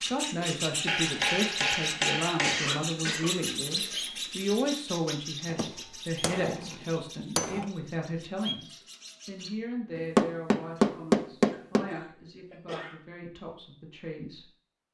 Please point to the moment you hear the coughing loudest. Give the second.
3 s.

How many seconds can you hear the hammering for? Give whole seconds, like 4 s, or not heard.
6 s.